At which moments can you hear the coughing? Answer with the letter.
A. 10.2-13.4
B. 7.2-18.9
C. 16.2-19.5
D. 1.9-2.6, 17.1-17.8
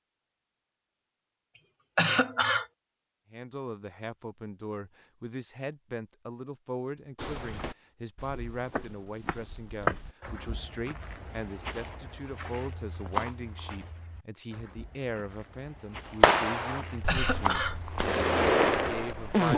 D.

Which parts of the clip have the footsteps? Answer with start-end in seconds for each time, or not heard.
7.2-18.9.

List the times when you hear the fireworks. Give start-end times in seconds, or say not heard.
16.2-19.5.